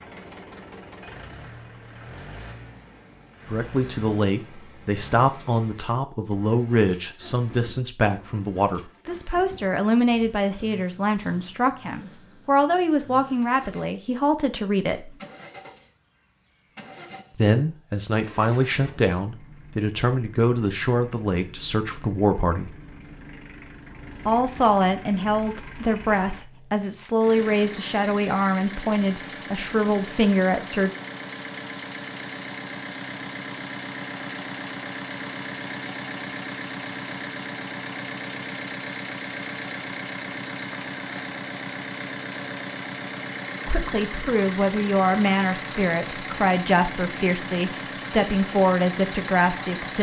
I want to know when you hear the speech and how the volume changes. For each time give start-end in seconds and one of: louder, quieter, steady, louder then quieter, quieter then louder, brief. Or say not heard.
3.5-15.2 steady
17.4-22.8 steady
24.2-30.9 steady
43.6-49.9 steady.